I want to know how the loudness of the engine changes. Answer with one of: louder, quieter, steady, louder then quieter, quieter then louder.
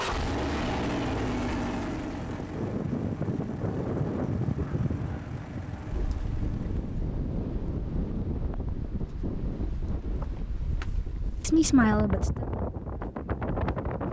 quieter.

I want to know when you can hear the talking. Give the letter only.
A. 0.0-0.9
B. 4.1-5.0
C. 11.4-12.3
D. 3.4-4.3
C.